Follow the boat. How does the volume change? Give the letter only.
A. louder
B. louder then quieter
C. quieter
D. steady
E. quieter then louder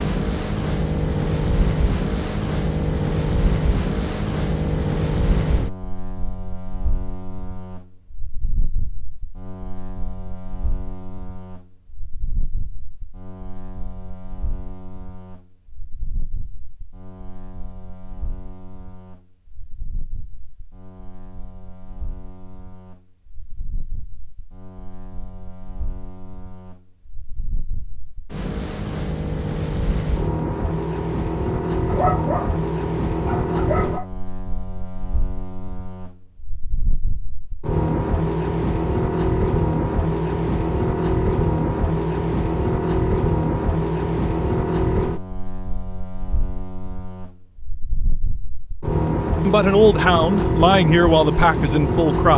E.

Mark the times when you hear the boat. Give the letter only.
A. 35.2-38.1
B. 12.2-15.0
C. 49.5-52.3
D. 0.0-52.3
D.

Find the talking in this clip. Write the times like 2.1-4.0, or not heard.
49.5-52.3.